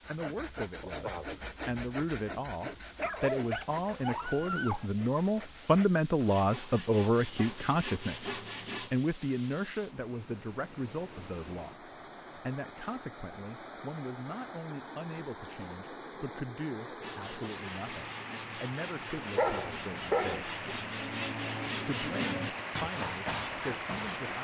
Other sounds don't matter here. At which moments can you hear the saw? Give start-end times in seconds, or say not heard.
0.0-8.9, 17.0-24.3.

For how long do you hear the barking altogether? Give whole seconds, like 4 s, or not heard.
3 s.